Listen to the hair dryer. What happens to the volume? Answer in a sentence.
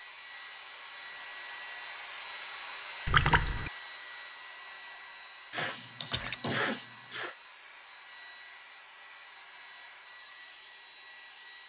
The volume of the hair dryer goes down.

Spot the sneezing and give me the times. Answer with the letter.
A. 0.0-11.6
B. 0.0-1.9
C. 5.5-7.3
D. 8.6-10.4
C.